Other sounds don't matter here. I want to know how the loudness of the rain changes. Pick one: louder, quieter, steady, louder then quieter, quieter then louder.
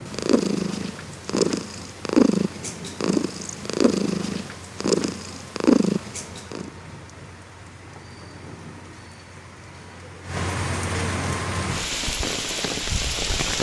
louder.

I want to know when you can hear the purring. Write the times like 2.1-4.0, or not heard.
0.0-6.7.